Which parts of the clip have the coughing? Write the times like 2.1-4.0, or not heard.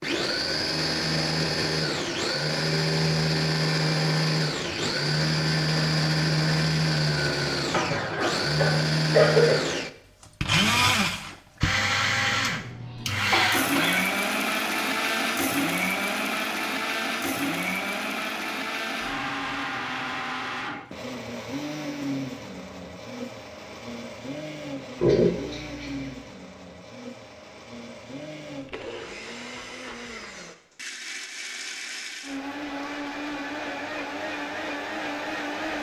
7.7-9.7, 11.9-14.0, 25.0-26.1.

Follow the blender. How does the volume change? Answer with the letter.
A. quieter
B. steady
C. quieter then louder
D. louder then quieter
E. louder
A.